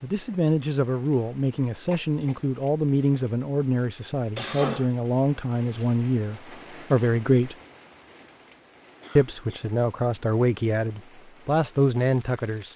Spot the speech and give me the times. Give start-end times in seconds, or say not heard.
0.0-7.5, 9.2-12.7.